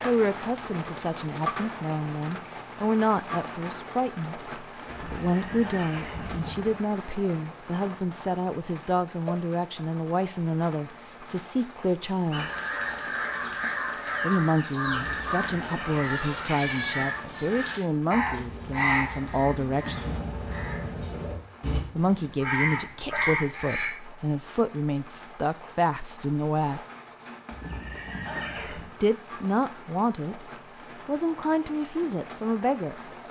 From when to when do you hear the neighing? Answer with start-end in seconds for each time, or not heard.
4.8-6.8, 14.9-16.1, 27.5-28.9.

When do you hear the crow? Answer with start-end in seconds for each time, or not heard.
12.3-23.9.